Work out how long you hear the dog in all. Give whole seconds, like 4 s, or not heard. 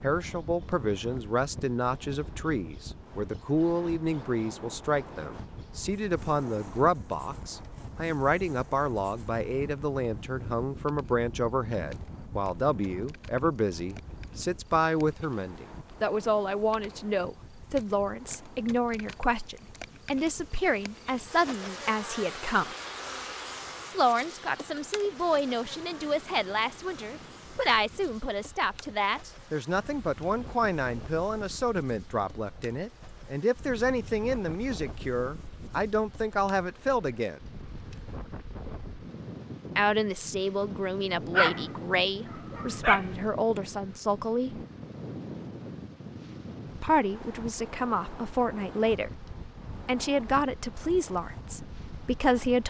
2 s.